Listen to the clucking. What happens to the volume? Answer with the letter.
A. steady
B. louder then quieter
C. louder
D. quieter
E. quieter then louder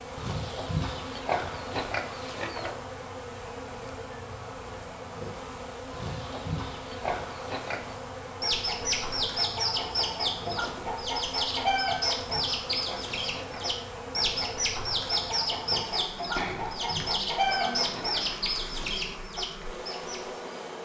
A.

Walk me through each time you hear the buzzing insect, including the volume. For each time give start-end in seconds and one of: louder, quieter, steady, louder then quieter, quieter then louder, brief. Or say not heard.
0.0-20.7 steady.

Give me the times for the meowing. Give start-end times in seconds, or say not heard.
not heard.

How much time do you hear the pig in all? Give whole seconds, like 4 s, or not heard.
9 s.